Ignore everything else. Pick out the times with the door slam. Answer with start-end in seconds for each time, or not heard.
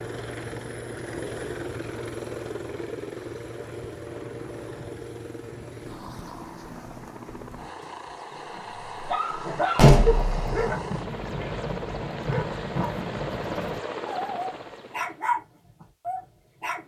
9.8-10.7.